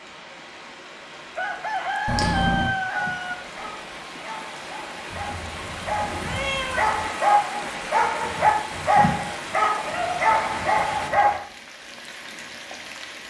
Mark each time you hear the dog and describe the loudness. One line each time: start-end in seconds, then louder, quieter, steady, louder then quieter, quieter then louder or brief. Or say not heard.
2.9-11.4 louder.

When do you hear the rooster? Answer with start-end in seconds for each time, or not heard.
1.4-3.4.